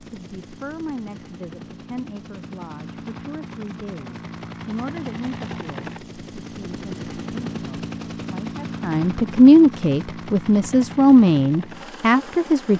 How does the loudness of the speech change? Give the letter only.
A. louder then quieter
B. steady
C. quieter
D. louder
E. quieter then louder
D.